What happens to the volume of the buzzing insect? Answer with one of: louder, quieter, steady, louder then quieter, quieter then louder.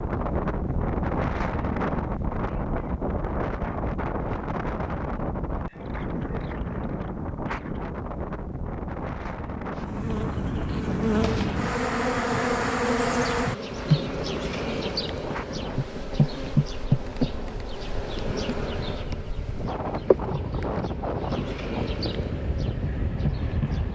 quieter.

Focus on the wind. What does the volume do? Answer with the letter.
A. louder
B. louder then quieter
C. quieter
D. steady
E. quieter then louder
E.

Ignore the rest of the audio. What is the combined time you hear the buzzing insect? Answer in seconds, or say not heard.
14 s.